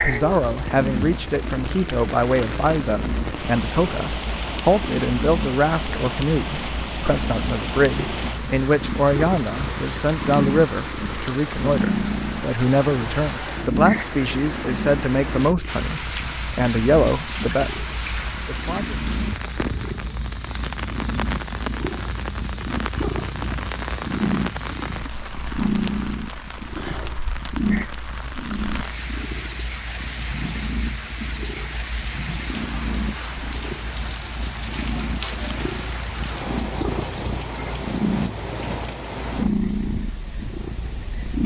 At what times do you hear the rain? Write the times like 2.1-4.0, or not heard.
0.0-41.4.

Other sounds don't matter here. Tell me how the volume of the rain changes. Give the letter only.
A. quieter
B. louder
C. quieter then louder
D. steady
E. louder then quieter
D.